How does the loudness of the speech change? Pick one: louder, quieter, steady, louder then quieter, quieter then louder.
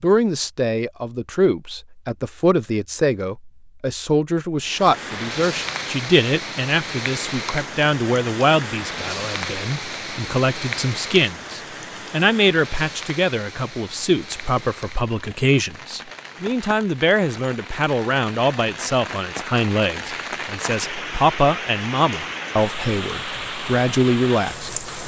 steady.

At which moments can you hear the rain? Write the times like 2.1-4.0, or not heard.
4.6-25.0.